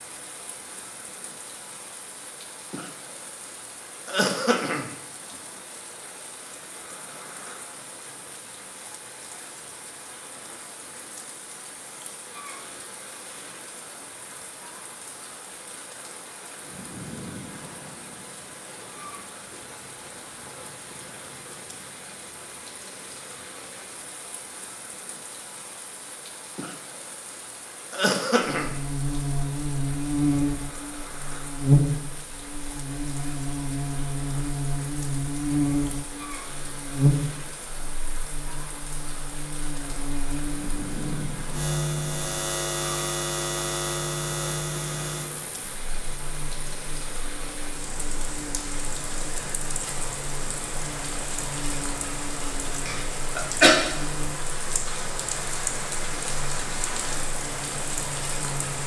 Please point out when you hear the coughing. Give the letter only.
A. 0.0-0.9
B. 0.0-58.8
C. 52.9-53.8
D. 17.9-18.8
C.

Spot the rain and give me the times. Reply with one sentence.
You can hear the rain from 0.0 to 58.8 s.